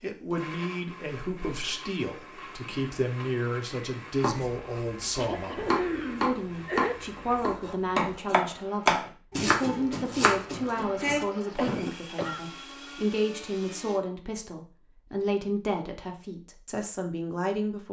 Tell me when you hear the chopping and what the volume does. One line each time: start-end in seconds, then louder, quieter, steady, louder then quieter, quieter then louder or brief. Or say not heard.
4.2-11.2 louder then quieter.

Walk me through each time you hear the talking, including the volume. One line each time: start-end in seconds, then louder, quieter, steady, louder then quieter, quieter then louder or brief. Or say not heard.
0.0-17.8 steady.